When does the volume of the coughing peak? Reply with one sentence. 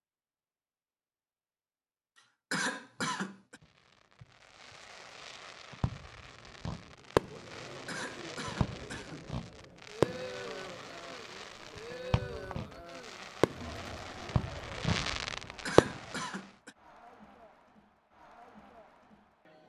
The volume of the coughing peaks at 3 seconds.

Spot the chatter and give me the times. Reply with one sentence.
You can hear the chatter from 7.2 to 19.6 s.